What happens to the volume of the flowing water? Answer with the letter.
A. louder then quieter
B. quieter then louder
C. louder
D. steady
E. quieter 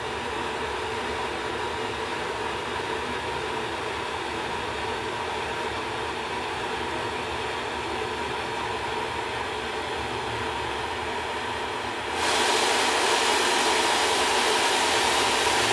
C.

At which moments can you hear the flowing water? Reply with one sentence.
The flowing water can be heard from 0.0 to 15.6 s.